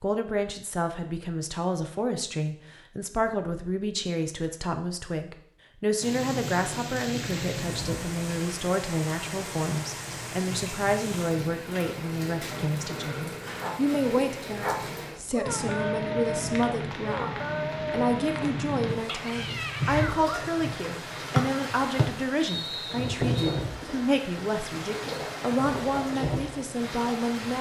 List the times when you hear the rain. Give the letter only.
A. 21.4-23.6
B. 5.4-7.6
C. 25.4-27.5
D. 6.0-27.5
D.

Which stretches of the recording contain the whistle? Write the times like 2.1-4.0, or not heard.
21.4-23.6.